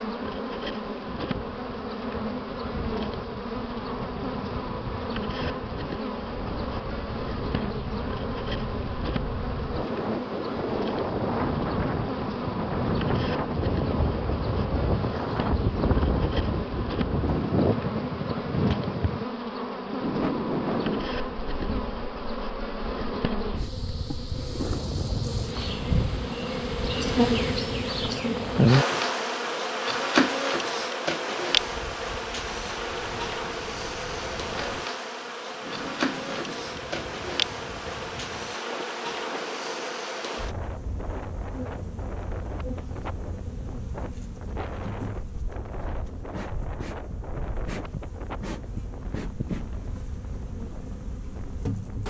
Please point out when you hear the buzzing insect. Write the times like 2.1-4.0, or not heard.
0.0-52.0.